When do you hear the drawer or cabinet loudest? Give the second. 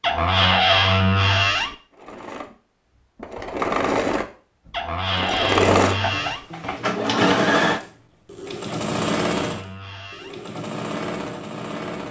1 s.